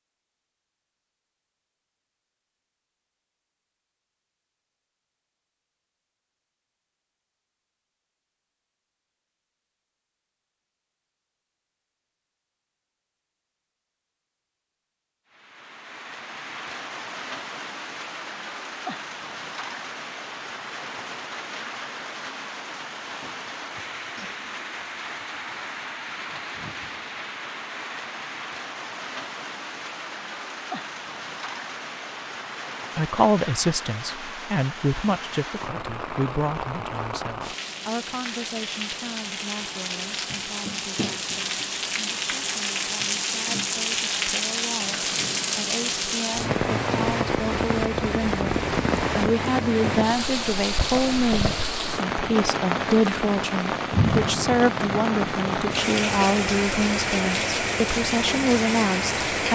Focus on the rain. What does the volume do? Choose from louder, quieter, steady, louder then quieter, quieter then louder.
louder.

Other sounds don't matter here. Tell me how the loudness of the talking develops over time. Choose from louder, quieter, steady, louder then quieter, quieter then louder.
quieter then louder.